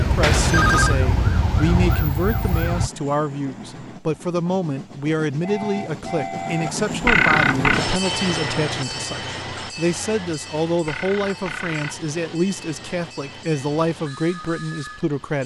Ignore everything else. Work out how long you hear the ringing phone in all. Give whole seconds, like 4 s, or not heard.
3 s.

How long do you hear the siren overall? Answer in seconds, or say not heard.
3 s.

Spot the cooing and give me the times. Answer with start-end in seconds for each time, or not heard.
not heard.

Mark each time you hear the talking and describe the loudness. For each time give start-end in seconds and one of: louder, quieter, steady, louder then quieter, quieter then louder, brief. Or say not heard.
0.0-15.4 steady.